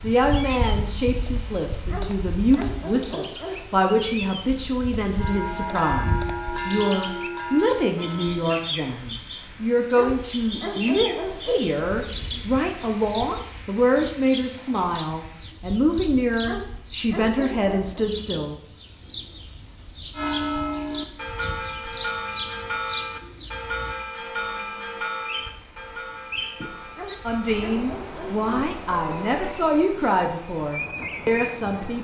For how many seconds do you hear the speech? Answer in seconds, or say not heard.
23 s.